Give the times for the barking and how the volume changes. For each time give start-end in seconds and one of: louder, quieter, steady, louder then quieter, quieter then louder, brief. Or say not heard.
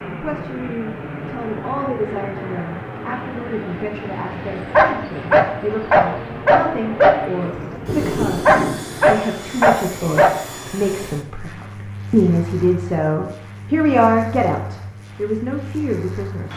4.7-10.3 steady.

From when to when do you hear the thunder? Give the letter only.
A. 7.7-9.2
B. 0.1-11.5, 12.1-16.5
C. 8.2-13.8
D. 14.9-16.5
A.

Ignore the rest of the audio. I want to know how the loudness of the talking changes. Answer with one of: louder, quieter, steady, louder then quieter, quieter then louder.
louder.